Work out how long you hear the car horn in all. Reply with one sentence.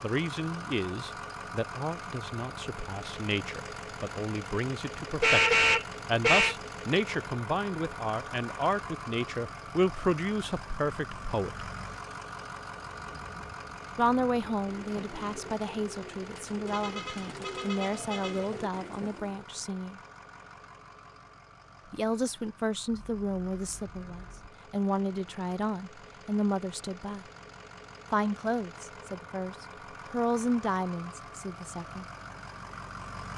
The car horn can be heard for 5 seconds in total.